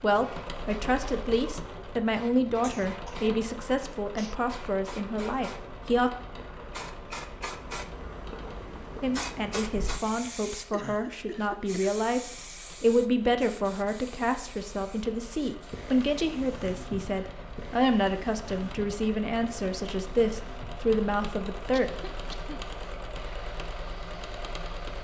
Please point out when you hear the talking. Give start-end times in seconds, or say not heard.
0.0-6.1, 9.0-21.9.